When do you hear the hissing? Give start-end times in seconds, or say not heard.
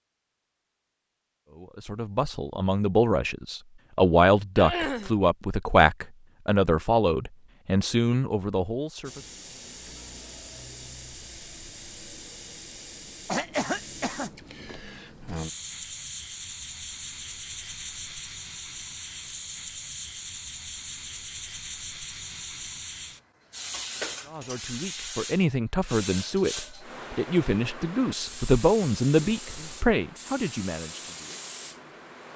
9.0-32.3.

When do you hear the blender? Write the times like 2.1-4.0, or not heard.
not heard.